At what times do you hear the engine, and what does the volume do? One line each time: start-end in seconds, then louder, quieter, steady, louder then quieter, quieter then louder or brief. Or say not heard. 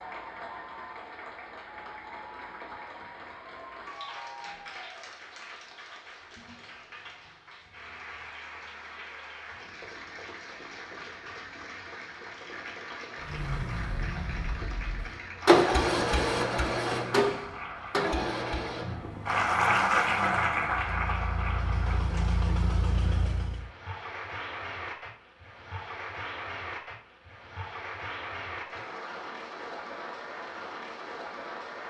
13.2-23.7 quieter then louder.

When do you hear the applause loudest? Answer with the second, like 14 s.
20 s.